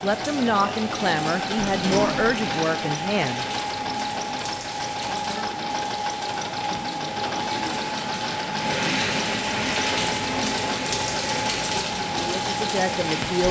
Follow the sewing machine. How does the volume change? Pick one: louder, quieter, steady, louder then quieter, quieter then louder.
steady.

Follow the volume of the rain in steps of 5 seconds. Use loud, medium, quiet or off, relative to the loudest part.
medium, loud, loud.